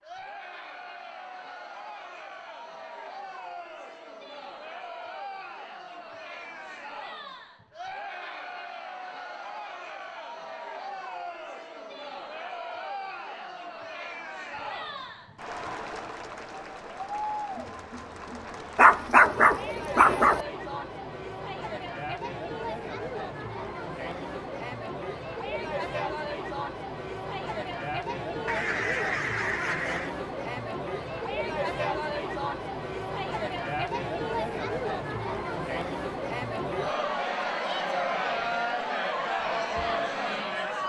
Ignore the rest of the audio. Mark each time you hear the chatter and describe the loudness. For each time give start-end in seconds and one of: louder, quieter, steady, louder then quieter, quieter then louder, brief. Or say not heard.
0.0-40.8 louder.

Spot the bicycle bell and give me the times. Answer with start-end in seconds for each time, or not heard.
not heard.